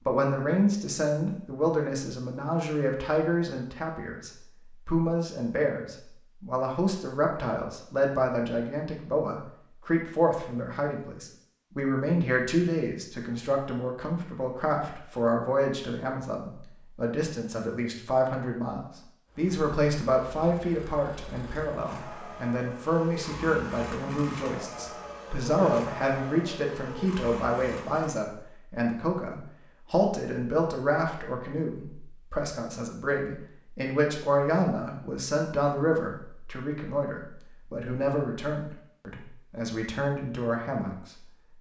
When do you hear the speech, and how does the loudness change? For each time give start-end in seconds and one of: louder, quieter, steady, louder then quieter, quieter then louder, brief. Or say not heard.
0.1-41.5 steady.